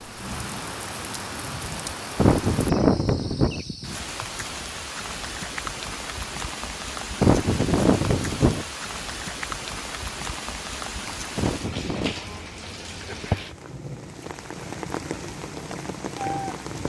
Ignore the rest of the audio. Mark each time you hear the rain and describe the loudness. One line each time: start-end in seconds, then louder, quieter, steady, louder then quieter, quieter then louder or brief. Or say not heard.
0.0-16.8 steady.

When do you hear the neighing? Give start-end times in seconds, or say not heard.
2.1-3.6, 7.2-8.7, 11.3-12.2.